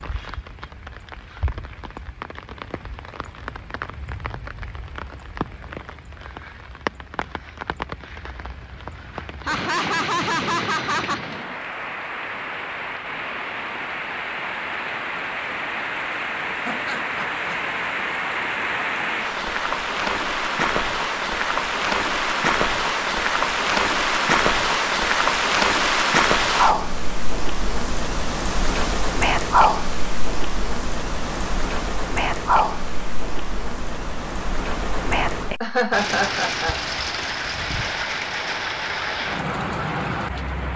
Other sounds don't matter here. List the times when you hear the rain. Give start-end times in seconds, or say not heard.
0.0-40.7.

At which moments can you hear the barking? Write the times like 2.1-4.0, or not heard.
not heard.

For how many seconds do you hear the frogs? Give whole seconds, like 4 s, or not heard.
not heard.